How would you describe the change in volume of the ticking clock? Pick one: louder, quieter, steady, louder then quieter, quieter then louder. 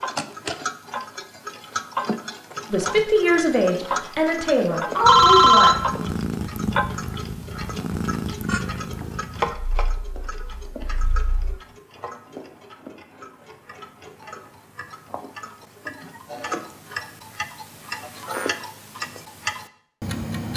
quieter then louder.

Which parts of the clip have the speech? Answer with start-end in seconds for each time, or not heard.
2.7-5.8.